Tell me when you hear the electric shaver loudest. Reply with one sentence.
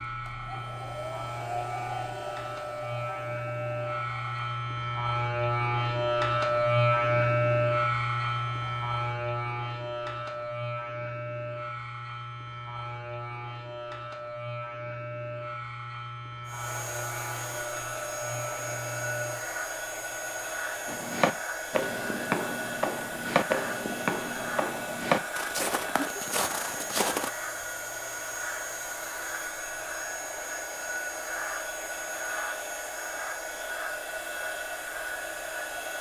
The volume of the electric shaver peaks at 7 seconds.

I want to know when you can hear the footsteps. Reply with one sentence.
You can hear the footsteps from 20.9 to 27.3 s.